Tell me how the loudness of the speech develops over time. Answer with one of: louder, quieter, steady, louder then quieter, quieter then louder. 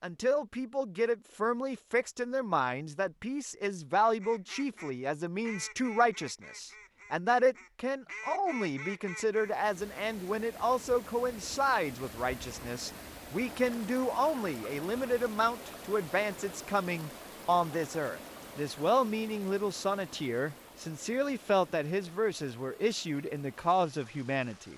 steady.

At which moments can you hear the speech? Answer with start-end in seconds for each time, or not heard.
0.0-24.7.